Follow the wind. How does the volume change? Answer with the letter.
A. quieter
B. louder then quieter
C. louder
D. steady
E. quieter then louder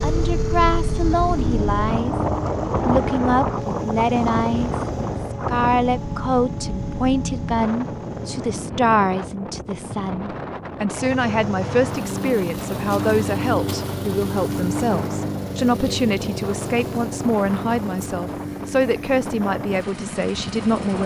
A.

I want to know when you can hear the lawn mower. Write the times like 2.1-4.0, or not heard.
0.0-8.6, 10.9-21.0.